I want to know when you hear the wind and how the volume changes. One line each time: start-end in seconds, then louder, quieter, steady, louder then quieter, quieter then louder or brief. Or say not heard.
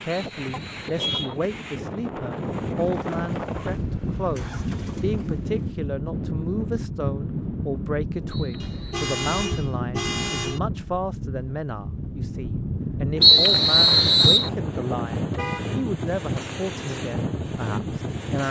0.0-18.4 steady.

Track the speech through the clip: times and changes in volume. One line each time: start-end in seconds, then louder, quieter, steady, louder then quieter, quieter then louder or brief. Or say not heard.
0.0-18.4 steady.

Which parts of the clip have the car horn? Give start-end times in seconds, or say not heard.
0.5-1.4, 8.6-10.6, 15.3-15.8.